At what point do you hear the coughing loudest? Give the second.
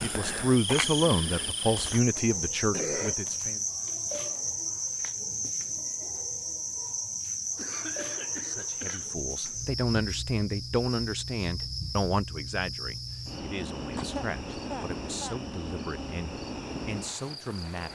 3 s.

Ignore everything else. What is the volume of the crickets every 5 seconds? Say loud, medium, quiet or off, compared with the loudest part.
loud, loud, medium, medium.